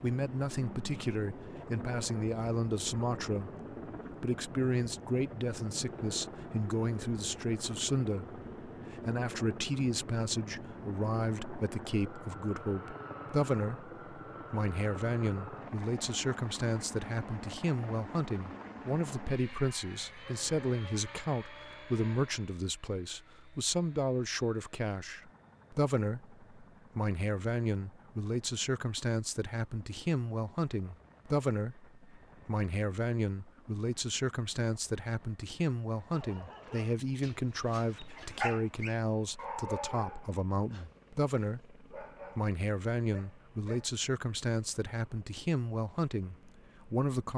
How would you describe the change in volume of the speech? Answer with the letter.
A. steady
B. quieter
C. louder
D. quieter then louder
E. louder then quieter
A.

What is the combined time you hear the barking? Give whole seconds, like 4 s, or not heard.
8 s.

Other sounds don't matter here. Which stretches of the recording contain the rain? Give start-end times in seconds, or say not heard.
not heard.